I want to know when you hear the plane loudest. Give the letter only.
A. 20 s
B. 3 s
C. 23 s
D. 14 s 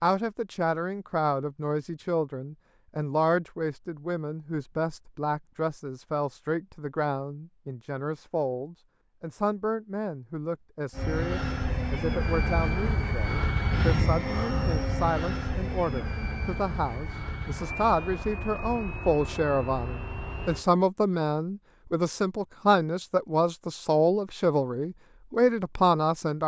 D.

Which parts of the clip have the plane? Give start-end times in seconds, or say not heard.
10.9-20.6.